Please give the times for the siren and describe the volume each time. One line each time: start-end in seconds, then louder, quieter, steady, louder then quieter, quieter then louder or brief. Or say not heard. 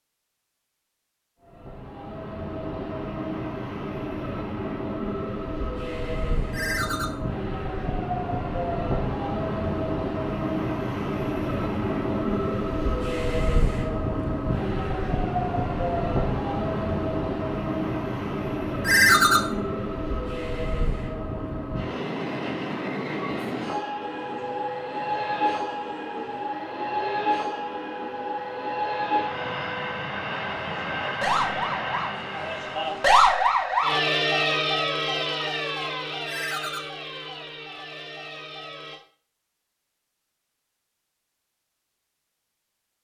24.0-39.0 louder then quieter.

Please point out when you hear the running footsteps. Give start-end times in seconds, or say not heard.
not heard.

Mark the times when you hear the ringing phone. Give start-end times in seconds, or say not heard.
6.5-7.1, 18.9-19.4, 36.2-36.8.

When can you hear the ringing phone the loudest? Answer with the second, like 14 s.
19 s.